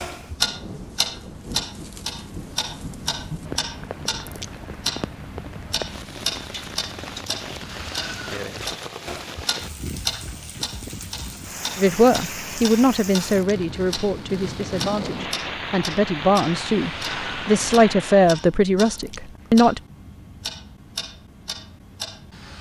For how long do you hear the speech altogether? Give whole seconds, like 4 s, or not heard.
8 s.